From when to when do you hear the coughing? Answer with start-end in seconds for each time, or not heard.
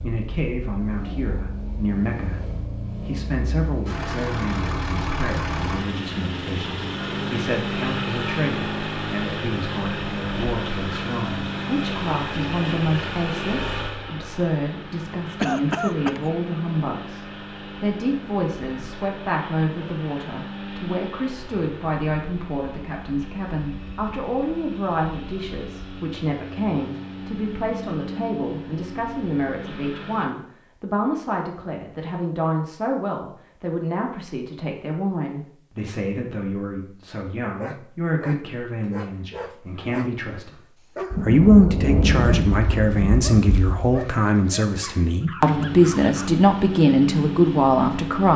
15.4-16.2.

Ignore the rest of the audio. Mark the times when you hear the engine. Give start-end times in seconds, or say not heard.
0.0-30.3, 45.4-48.3.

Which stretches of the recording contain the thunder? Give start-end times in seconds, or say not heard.
41.1-44.0.